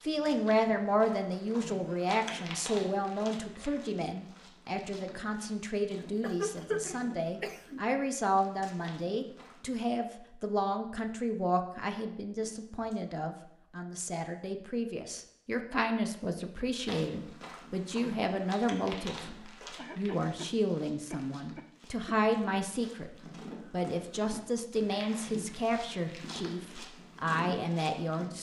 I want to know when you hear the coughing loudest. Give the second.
7 s.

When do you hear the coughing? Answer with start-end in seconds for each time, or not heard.
6.0-7.8, 12.4-13.1, 19.8-22.1.